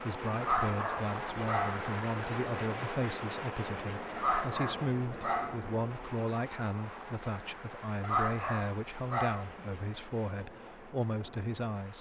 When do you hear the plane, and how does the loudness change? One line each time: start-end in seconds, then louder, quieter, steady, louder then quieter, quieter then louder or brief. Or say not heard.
0.0-11.9 quieter.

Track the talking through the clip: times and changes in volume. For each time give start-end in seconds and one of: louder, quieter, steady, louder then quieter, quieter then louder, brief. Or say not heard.
0.0-11.9 steady.